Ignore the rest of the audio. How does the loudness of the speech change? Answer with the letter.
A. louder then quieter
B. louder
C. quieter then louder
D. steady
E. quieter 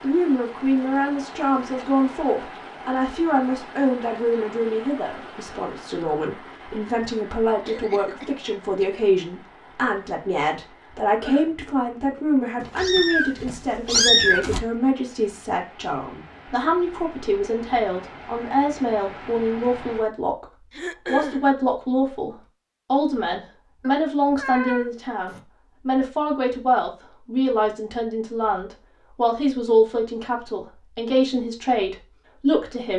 D.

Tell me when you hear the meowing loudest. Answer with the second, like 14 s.
14 s.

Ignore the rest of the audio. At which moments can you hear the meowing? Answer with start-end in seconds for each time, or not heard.
12.6-14.6, 23.8-25.4.